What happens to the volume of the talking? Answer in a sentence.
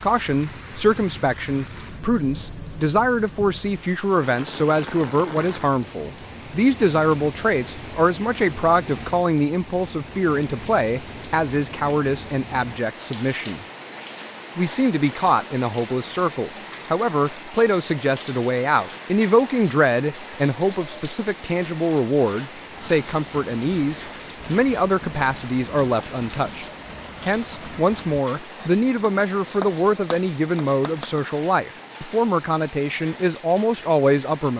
The loudness of the talking stays about the same.